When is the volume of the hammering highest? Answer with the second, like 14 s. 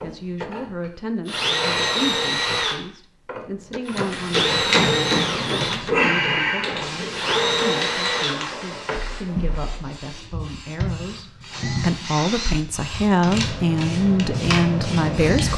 5 s.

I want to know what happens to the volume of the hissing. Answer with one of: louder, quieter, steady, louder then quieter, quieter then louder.
quieter then louder.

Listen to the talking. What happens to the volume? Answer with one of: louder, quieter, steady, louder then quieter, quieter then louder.
louder.